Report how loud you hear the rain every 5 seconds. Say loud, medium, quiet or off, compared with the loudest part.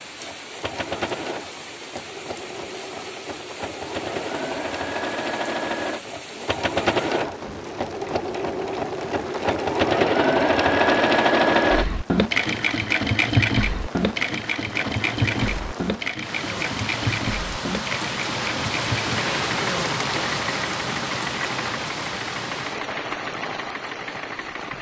medium, medium, medium, loud, loud.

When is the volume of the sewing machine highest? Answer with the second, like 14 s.
11 s.